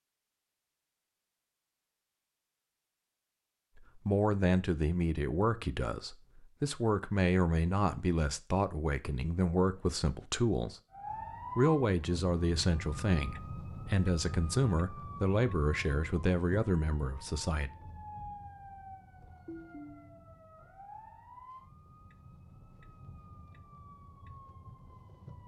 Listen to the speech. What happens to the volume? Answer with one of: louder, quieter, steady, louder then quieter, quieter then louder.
steady.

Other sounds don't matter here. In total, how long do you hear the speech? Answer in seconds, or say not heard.
13 s.